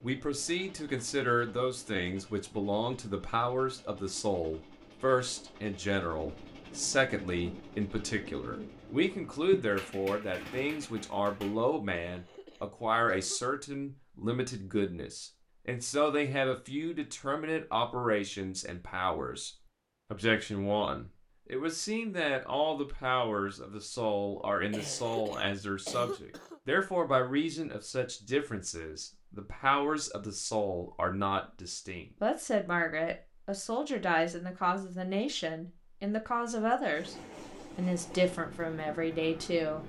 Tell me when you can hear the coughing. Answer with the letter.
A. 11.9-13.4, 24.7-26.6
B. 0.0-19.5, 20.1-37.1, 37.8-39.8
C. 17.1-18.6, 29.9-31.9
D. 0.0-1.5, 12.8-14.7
A.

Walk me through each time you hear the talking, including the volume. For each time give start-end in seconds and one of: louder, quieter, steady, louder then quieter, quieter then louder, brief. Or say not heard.
0.0-19.5 steady
20.1-37.1 steady
37.8-39.8 brief.